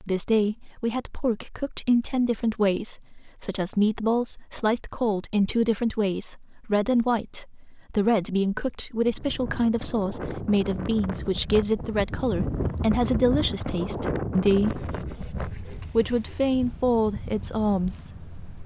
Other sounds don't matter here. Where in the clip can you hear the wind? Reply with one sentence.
You can hear the wind from 8.9 to 18.6 s.